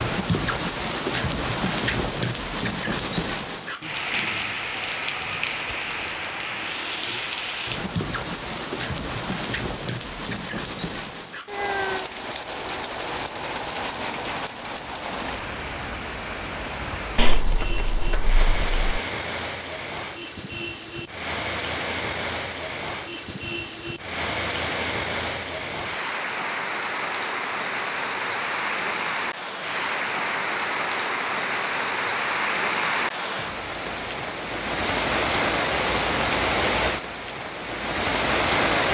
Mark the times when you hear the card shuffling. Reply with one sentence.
You can hear the card shuffling from 17.1 to 19.0 s.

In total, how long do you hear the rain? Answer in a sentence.
The rain can be heard for 39 seconds in total.